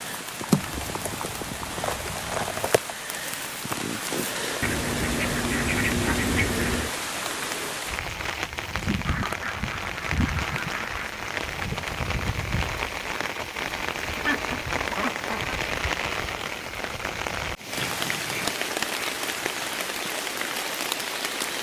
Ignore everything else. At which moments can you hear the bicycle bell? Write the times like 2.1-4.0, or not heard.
not heard.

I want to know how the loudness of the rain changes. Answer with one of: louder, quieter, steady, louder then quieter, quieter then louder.
steady.